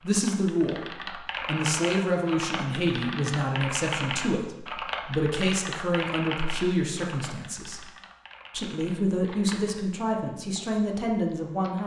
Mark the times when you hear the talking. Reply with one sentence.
The talking can be heard from 0.0 to 7.8 s and from 8.5 to 11.8 s.